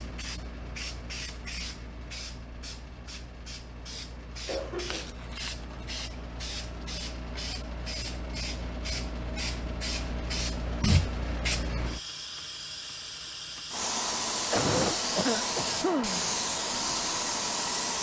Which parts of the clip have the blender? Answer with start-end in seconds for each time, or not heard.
not heard.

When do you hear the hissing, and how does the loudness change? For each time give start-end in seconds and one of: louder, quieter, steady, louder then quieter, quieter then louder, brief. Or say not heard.
0.0-17.9 louder.